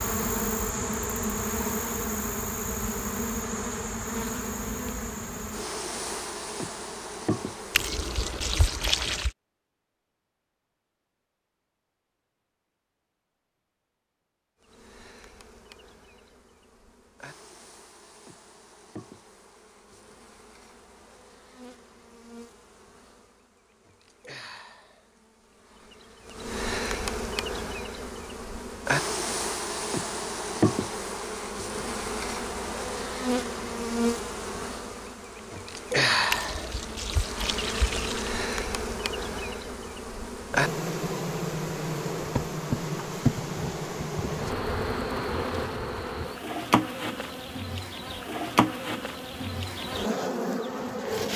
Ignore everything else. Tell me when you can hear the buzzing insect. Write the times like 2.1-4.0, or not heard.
0.0-8.4, 14.6-51.3.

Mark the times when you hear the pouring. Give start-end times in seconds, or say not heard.
7.7-9.3, 36.3-38.4.